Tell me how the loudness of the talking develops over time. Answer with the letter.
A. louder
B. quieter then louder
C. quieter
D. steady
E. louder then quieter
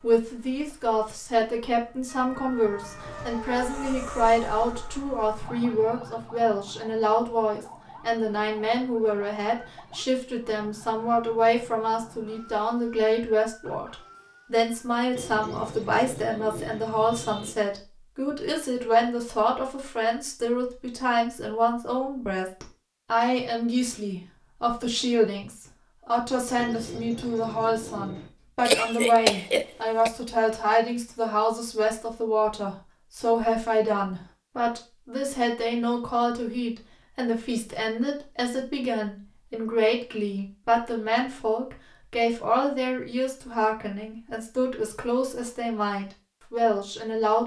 D.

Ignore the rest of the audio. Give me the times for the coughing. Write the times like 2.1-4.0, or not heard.
28.6-30.1.